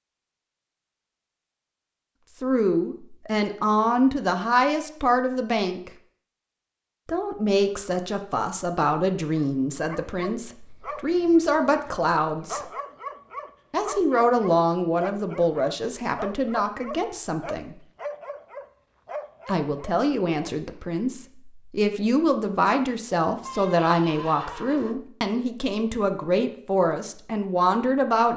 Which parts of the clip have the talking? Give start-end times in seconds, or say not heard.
2.4-5.9, 7.0-12.6, 13.7-17.8, 19.4-28.3.